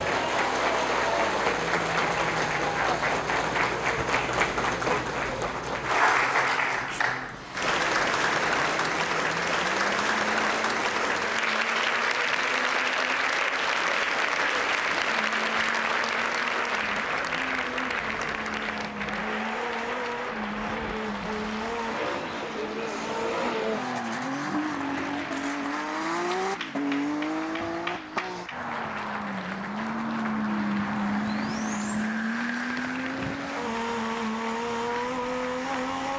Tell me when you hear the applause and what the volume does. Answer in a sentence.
You can hear the applause from 0.0 to 36.1 s, getting quieter.